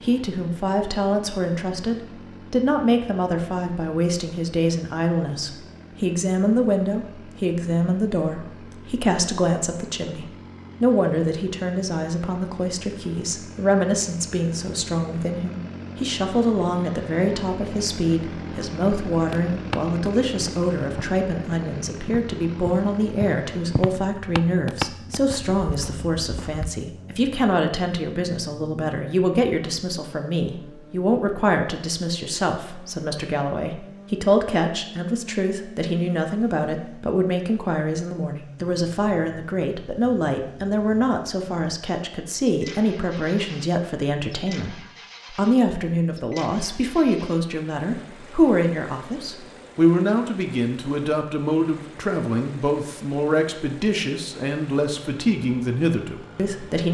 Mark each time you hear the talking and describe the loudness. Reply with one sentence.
The talking can be heard from 0.0 to 56.8 s, at a steady volume.